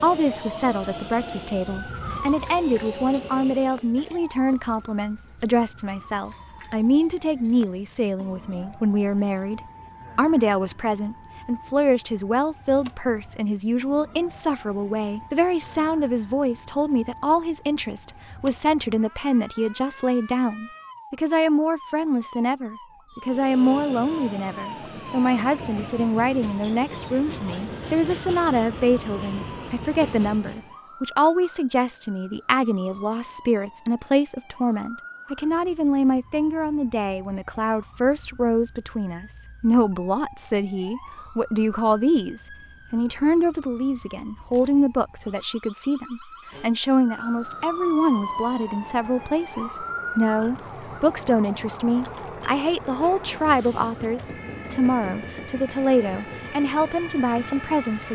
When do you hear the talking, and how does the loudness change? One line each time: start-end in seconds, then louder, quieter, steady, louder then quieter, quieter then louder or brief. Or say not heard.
0.0-58.0 steady.